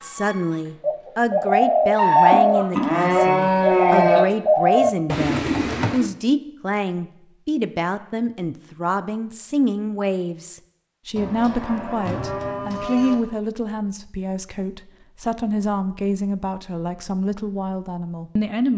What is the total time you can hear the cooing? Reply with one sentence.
The cooing can be heard for 6 seconds in total.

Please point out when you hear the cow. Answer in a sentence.
The cow can be heard from 1.9 to 4.2 s and from 11.2 to 13.2 s.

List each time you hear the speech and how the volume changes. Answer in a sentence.
You can hear the speech from 0.0 to 18.7 s, at a steady volume.